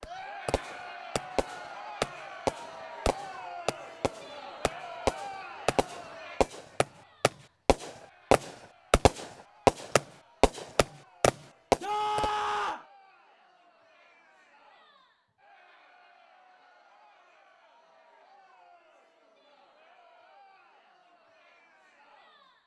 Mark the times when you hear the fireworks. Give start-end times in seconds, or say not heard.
0.0-12.3.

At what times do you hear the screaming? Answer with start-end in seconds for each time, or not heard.
11.8-12.8.